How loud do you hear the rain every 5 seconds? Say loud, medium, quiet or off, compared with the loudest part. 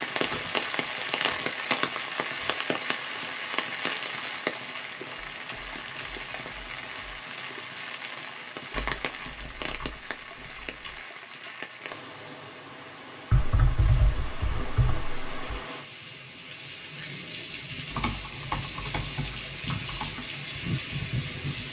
loud, medium, medium, medium, loud.